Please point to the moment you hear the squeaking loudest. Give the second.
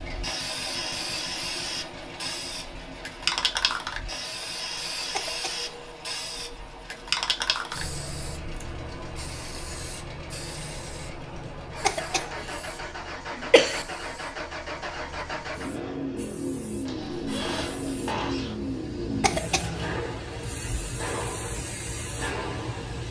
18 s.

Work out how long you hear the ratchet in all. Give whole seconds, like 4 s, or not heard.
not heard.